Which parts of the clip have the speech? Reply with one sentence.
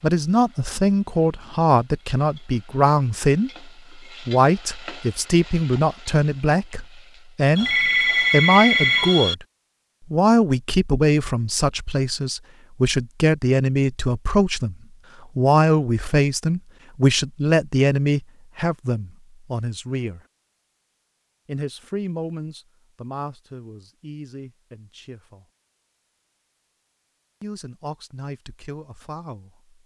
The speech can be heard from 0.0 to 9.4 s, from 10.1 to 14.8 s, from 15.3 to 20.2 s, from 21.4 to 25.4 s and from 27.4 to 29.6 s.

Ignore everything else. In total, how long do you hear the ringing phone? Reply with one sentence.
The ringing phone can be heard for 2 seconds in total.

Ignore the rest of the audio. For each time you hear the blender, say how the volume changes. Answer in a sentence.
You can't hear the blender here.